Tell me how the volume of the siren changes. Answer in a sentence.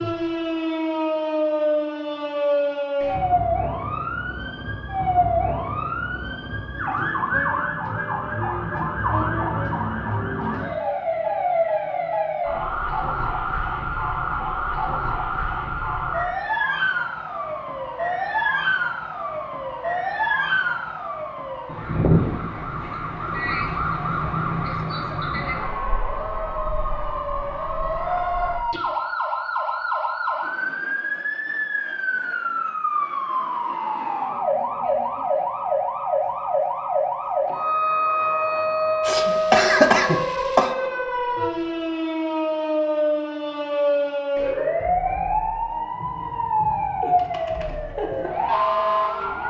The loudness of the siren stays about the same.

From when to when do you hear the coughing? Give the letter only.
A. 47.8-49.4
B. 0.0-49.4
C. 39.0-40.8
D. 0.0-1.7
C.